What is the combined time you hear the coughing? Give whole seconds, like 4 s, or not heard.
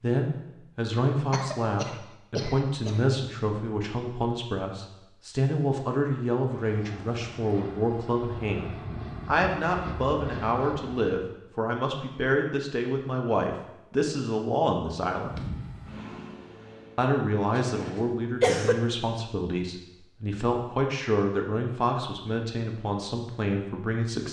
3 s.